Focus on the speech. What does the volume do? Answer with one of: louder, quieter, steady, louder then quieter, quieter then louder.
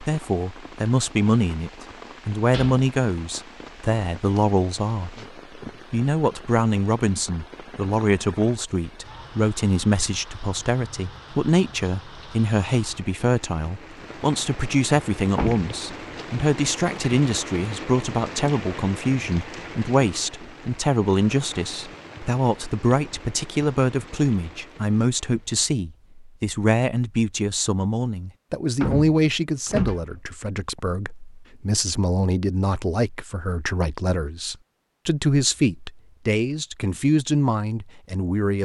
steady.